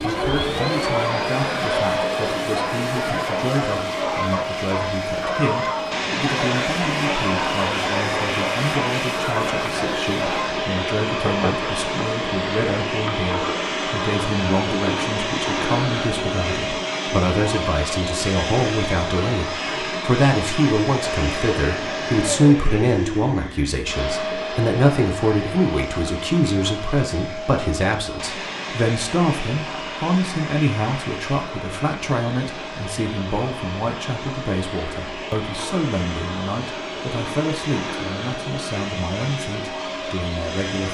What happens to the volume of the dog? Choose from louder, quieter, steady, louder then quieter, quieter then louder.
steady.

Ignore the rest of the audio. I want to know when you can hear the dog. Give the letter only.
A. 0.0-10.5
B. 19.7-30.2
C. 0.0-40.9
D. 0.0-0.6
A.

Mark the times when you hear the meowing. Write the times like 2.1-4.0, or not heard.
not heard.